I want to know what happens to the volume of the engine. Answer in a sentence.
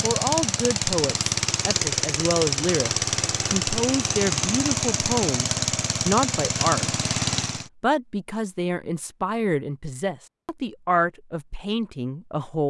The loudness of the engine stays about the same.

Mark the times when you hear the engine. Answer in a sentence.
The engine can be heard from 0.0 to 7.7 s.